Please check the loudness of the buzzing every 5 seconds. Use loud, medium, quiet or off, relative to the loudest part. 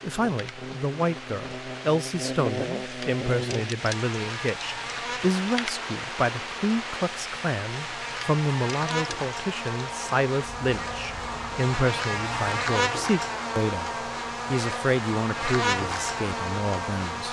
medium, medium, loud, loud.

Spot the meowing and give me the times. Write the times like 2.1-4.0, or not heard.
not heard.